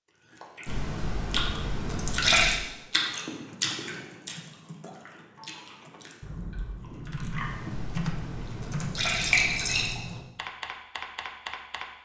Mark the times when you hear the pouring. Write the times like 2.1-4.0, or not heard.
0.7-2.6, 7.4-10.0.